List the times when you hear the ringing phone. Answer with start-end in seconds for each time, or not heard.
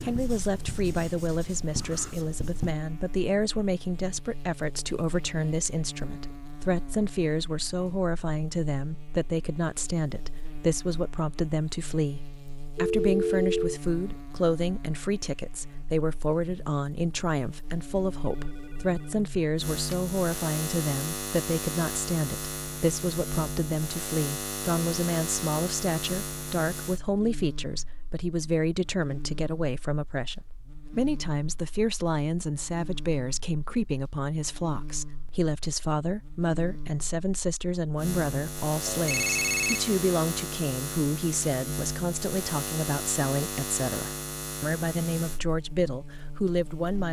12.8-13.8, 18.2-19.1, 38.9-39.8.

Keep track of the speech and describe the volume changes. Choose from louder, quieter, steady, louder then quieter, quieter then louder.
steady.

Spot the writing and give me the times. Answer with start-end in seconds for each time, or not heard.
0.0-2.8.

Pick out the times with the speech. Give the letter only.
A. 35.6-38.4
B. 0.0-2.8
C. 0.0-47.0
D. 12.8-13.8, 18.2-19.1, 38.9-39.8
C.